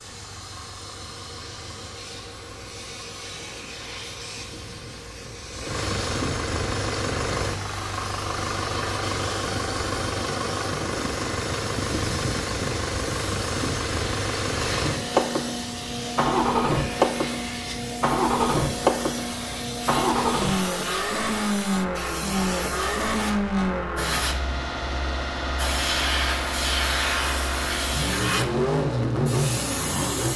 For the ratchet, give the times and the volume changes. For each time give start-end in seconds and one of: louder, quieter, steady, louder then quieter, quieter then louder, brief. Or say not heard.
not heard.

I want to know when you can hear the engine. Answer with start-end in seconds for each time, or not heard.
0.0-30.3.